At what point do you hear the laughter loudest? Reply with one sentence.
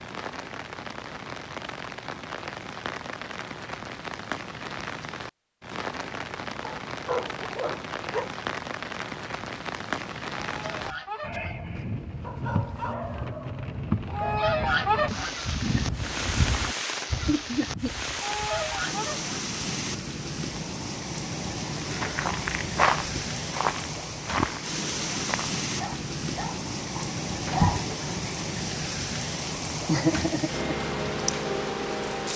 The volume of the laughter peaks at 30 seconds.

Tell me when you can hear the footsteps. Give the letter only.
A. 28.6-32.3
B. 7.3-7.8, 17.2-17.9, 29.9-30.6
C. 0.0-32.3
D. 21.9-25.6
D.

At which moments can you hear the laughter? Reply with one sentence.
The laughter can be heard from 7.3 to 7.8 s, from 17.2 to 17.9 s and from 29.9 to 30.6 s.